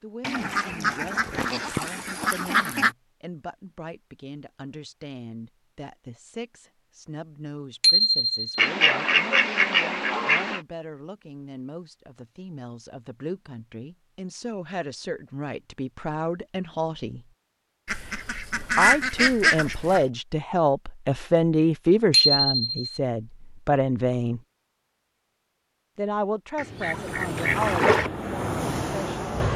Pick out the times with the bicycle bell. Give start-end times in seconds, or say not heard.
7.8-8.6, 22.1-22.9.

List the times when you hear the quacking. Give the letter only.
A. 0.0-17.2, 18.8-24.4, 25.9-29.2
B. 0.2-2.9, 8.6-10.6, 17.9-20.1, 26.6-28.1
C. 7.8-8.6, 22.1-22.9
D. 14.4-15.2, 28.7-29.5
B.